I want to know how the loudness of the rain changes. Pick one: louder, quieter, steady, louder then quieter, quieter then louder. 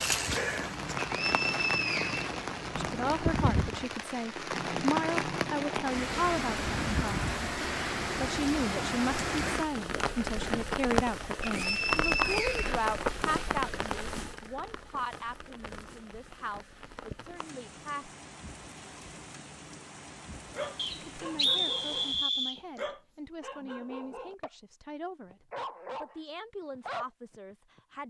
quieter.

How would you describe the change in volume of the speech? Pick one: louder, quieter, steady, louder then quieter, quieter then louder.
quieter.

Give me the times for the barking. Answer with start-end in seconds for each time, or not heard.
20.4-24.5, 25.3-28.0.